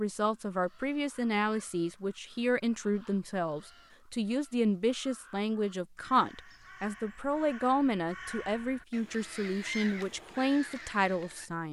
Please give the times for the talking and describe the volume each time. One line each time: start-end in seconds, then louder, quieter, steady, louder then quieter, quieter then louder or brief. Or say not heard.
0.0-11.6 steady.